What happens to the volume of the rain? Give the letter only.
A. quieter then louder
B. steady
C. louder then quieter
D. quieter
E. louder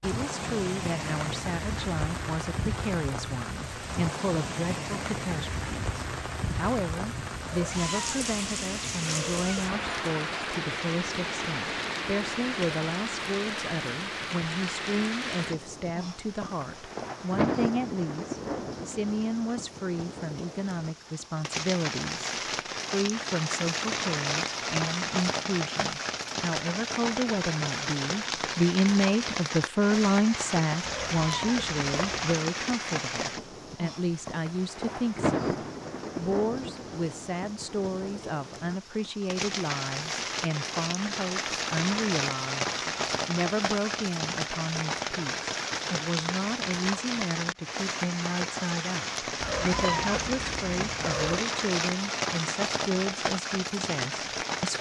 B.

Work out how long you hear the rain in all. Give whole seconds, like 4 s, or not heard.
55 s.